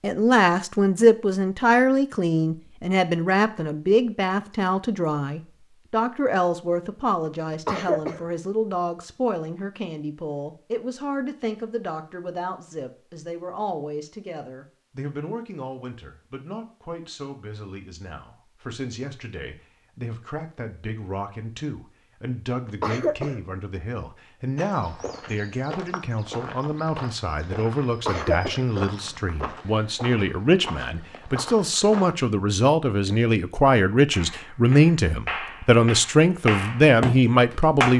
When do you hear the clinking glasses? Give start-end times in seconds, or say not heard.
not heard.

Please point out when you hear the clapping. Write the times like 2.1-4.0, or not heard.
34.1-37.9.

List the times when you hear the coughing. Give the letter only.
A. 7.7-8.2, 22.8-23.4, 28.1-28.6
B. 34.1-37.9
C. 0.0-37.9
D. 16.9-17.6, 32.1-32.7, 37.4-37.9
A.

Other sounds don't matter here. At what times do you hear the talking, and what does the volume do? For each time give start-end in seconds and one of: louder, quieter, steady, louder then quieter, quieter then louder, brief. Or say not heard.
0.0-37.9 quieter then louder.